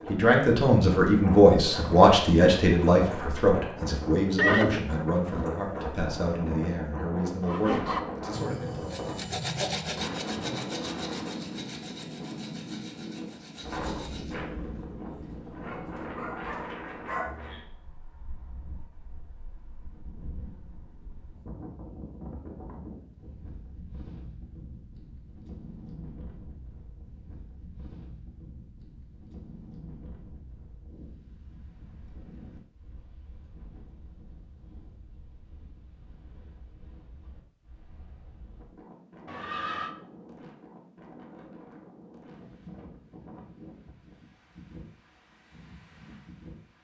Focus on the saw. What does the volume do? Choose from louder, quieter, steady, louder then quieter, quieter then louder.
quieter.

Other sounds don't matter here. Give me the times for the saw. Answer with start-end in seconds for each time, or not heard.
7.5-14.4.